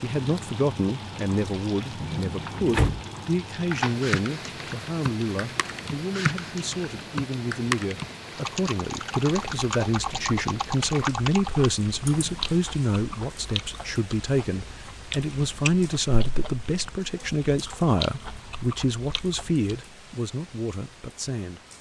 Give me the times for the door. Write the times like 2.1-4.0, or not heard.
2.0-3.0.